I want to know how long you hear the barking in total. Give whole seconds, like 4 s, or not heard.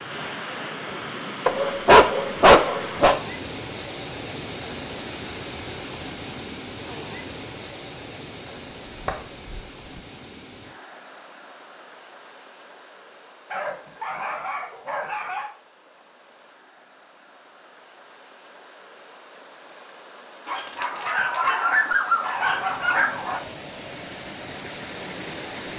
8 s.